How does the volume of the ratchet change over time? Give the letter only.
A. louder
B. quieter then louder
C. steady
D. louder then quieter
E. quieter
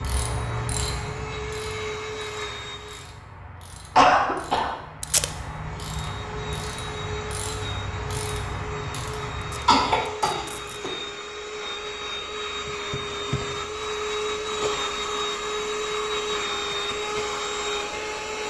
B.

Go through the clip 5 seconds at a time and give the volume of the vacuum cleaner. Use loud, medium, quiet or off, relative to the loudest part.
medium, medium, loud, loud.